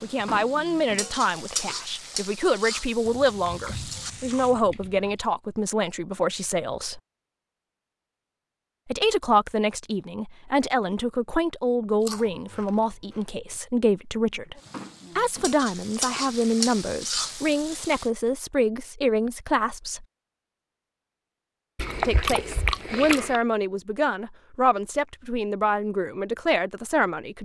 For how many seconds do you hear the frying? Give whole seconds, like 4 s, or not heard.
8 s.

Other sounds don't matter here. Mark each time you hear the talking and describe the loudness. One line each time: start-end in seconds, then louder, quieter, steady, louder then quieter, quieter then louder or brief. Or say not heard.
0.0-7.0 steady
8.8-14.6 steady
15.2-20.1 steady
22.0-27.4 steady.